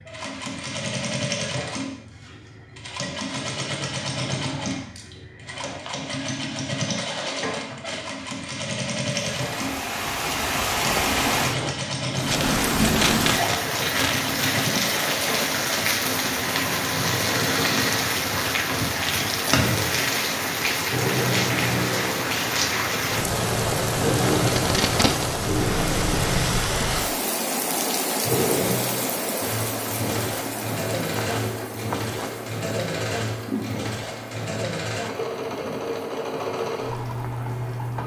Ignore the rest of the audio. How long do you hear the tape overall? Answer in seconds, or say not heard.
3 s.